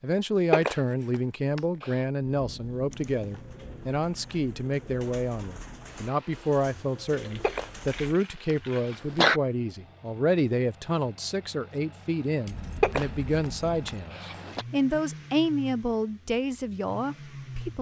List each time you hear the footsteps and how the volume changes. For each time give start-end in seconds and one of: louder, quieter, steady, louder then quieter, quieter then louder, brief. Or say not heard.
not heard.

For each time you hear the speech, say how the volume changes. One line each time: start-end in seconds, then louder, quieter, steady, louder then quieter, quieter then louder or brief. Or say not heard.
0.0-17.7 steady.